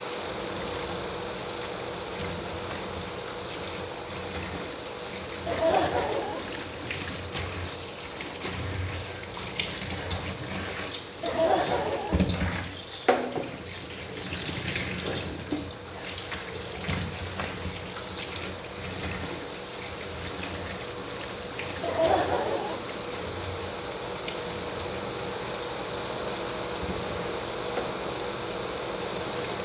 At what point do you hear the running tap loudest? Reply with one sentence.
The volume of the running tap peaks at 13 seconds.